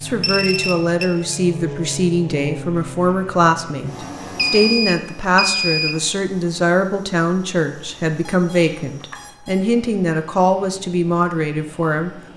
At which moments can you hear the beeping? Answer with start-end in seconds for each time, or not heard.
0.2-1.4, 4.3-6.0, 8.2-9.7.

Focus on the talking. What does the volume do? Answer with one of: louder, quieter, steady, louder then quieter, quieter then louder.
steady.